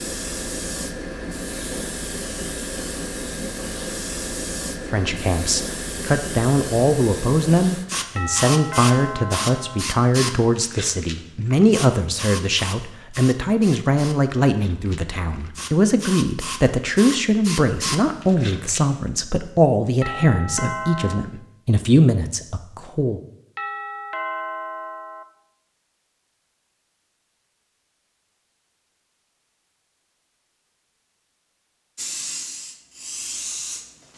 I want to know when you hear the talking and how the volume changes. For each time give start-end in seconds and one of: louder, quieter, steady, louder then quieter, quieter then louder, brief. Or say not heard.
4.9-23.2 steady.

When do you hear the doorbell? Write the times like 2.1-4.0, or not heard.
8.2-9.8, 20.0-21.2, 23.6-25.2.